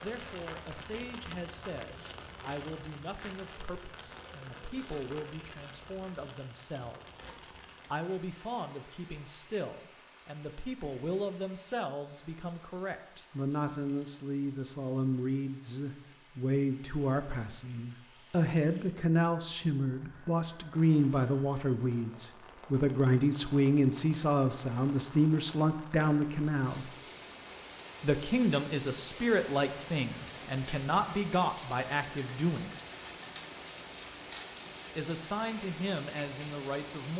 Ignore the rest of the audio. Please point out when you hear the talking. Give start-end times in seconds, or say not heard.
0.0-26.9, 28.0-32.8, 35.0-37.1.